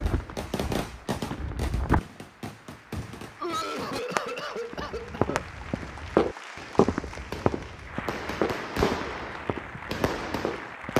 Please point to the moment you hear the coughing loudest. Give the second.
4 s.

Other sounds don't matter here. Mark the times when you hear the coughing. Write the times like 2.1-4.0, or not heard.
3.4-5.5.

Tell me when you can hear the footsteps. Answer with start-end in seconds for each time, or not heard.
0.0-2.0, 4.7-10.9.